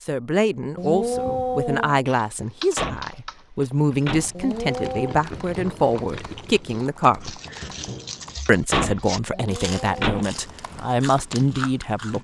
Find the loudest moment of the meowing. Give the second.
1 s.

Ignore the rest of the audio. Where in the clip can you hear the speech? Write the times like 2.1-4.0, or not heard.
0.0-7.4, 8.4-12.1.